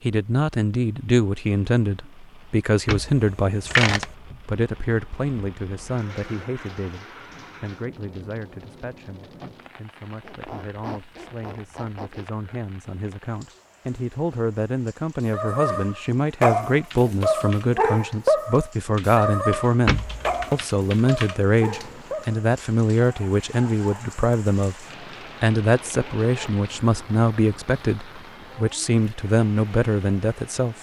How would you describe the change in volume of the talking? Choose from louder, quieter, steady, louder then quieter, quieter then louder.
quieter then louder.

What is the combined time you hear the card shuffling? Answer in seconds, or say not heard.
2 s.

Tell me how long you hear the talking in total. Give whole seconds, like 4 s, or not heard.
31 s.